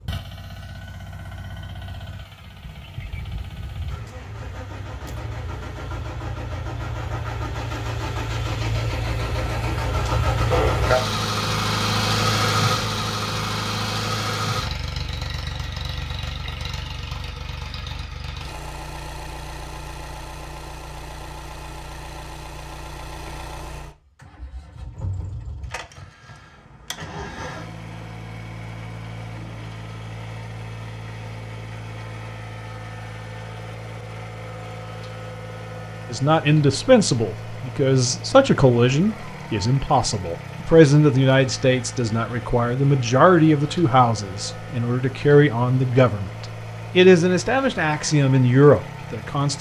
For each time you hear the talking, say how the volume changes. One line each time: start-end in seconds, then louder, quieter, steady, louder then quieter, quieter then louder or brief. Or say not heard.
36.1-46.3 steady
47.0-49.5 brief.